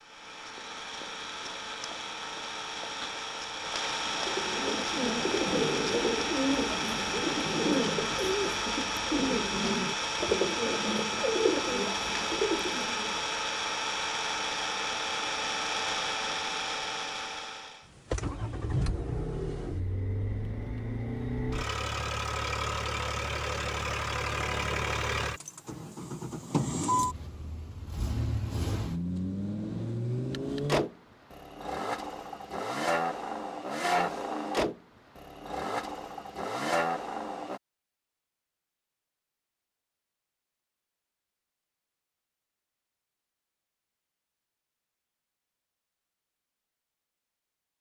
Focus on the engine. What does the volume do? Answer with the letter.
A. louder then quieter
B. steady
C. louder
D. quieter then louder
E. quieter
B.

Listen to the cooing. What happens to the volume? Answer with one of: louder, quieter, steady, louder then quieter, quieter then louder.
steady.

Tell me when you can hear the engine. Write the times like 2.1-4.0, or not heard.
0.0-37.6.